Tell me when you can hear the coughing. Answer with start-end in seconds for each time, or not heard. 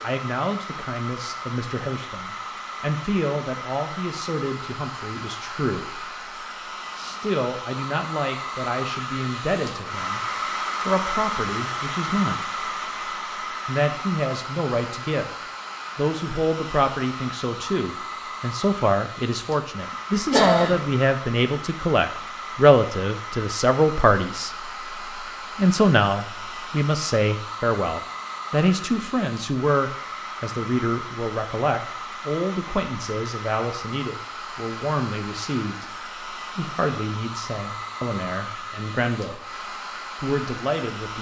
20.3-20.9.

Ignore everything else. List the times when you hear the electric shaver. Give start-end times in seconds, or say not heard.
not heard.